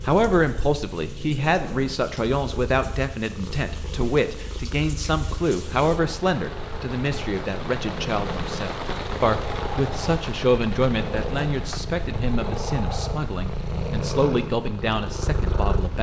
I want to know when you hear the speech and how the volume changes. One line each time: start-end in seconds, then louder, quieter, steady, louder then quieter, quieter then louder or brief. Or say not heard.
0.0-15.9 steady.